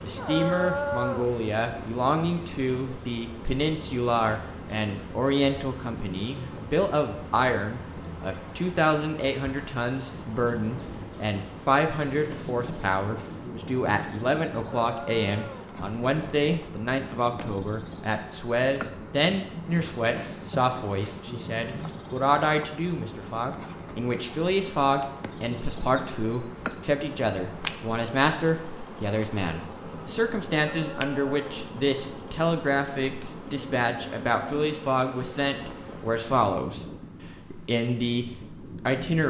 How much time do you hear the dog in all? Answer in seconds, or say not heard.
3 s.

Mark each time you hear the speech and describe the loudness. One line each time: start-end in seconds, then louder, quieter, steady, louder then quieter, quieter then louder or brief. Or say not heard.
0.0-36.9 steady
37.5-39.2 brief.